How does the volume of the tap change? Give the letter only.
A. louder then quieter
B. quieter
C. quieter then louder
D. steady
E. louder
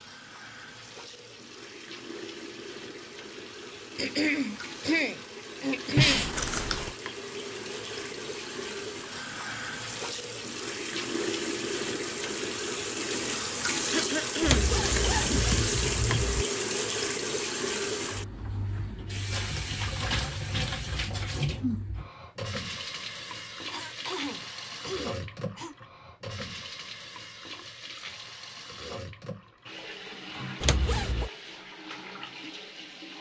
A.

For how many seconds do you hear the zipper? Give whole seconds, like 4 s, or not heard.
4 s.